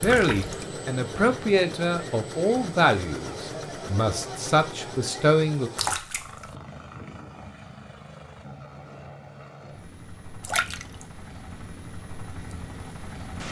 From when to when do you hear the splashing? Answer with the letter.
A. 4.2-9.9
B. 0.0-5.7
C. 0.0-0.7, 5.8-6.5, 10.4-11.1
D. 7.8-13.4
C.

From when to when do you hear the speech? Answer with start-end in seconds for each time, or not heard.
0.0-5.7.